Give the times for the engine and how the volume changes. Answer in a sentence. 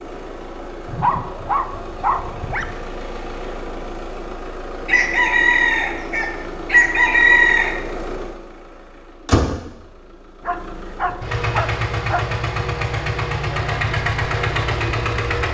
The engine can be heard from 0.0 to 15.4 s, getting louder.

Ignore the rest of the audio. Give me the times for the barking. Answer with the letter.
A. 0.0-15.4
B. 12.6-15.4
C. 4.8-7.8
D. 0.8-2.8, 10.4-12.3
D.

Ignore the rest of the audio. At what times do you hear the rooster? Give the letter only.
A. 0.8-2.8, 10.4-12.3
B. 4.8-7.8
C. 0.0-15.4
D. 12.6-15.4
B.